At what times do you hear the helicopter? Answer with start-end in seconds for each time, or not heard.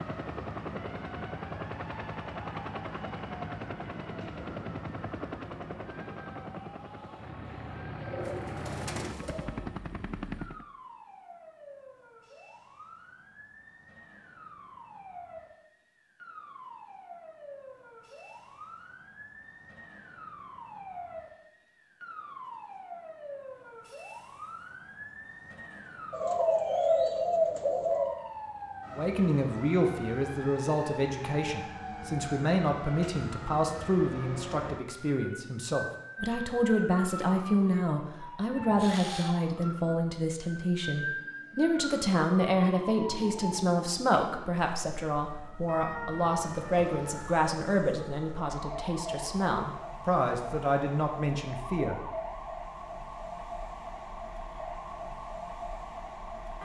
0.0-10.7.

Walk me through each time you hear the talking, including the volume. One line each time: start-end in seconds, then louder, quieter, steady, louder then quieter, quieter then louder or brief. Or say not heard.
28.9-52.0 steady.